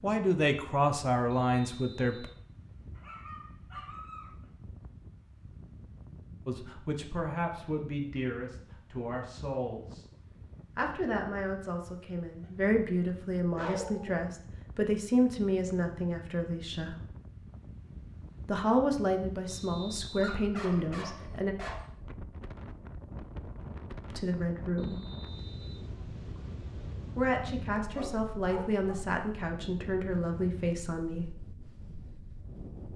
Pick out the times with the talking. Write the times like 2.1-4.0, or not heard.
0.0-2.2, 6.5-10.1, 10.8-16.9, 18.4-21.6, 24.1-25.0, 27.1-31.3.